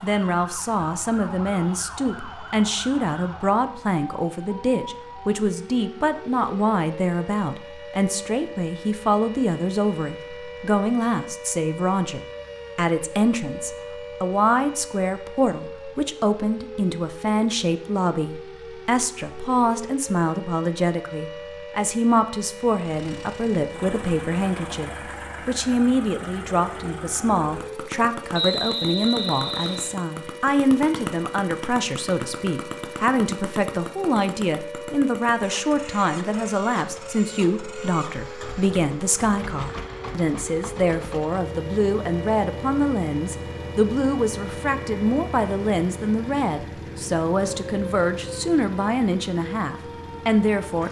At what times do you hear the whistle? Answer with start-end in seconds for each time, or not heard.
28.3-29.9.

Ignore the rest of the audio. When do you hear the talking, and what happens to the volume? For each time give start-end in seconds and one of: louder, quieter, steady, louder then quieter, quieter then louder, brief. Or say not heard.
0.0-50.8 steady.